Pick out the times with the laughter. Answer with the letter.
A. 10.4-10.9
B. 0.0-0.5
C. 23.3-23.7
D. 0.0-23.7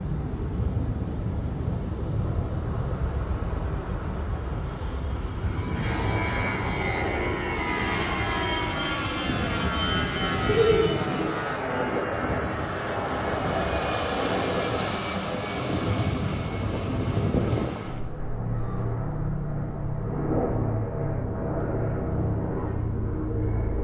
A.